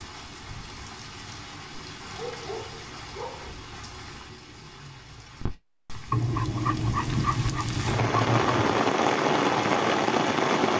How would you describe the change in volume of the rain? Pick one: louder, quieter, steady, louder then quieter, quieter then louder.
louder.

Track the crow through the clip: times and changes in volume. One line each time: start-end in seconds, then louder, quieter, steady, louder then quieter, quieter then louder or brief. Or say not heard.
not heard.